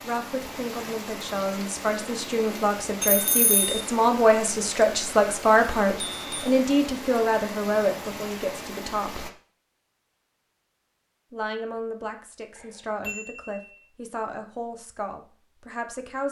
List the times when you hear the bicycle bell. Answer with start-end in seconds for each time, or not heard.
3.0-3.8, 6.1-6.5, 12.6-13.7.